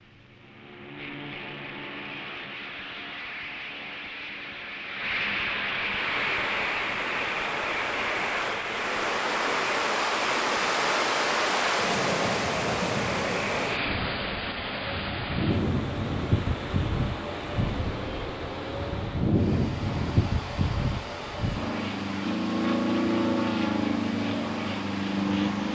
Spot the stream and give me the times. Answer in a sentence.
You can hear the stream from 5.8 to 25.6 s.